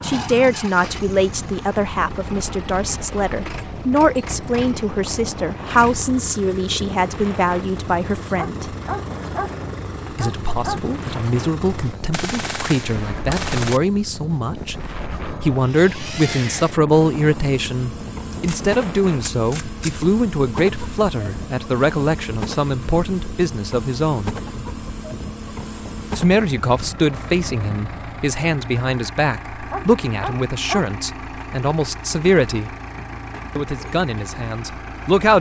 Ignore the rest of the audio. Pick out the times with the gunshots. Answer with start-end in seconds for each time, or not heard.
12.1-13.8, 18.3-20.1.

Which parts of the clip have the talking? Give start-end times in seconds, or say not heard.
0.0-8.8, 10.2-24.4, 26.1-32.7, 33.5-35.3.